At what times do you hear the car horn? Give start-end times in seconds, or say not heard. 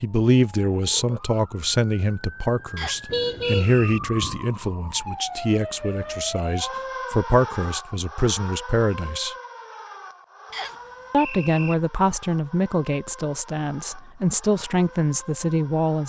3.0-4.4.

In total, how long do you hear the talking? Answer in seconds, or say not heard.
14 s.